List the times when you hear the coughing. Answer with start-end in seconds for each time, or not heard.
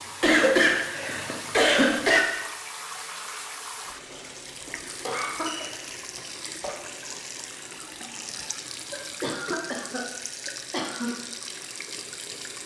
0.2-2.2, 5.0-6.8, 8.9-11.1.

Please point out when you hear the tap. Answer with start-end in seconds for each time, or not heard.
0.0-12.6.